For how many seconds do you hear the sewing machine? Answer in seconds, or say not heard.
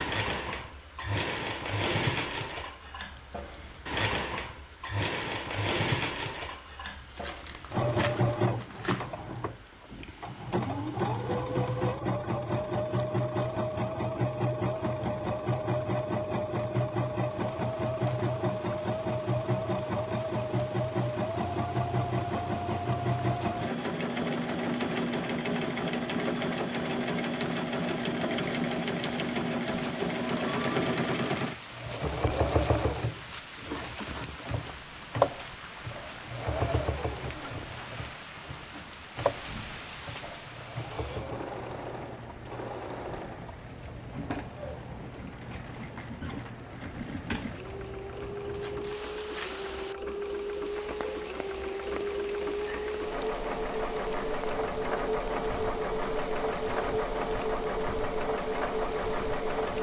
60 s.